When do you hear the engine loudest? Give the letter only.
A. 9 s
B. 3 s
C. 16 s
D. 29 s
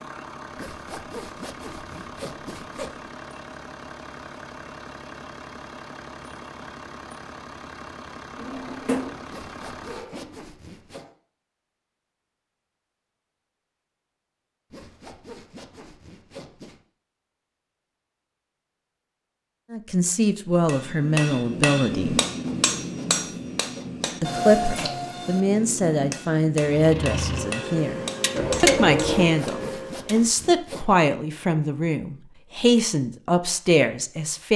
D.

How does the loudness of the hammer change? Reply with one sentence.
The loudness of the hammer goes down.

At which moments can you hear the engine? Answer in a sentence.
You can hear the engine from 0.0 to 11.2 s and from 26.7 to 30.2 s.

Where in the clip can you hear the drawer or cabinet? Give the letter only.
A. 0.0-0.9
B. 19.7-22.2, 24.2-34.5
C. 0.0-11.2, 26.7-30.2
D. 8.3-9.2
D.